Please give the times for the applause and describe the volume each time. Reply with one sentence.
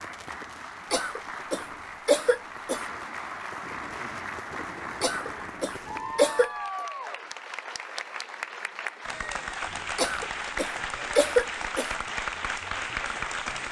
The applause can be heard from 0.0 to 13.6 s, getting louder.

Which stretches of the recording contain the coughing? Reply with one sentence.
The coughing can be heard from 0.9 to 2.9 s, from 5.0 to 6.5 s and from 9.9 to 11.9 s.